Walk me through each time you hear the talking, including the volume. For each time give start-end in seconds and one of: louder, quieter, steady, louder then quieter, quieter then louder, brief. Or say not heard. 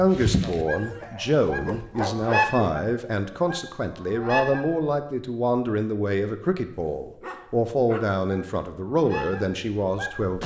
0.0-10.4 steady.